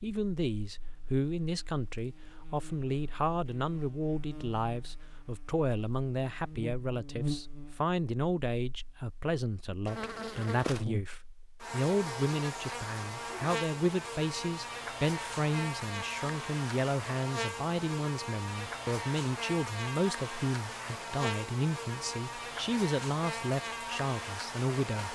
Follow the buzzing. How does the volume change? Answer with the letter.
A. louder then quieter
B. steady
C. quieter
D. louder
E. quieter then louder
D.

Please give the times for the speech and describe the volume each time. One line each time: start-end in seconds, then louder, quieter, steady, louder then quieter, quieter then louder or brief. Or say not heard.
0.0-25.0 steady.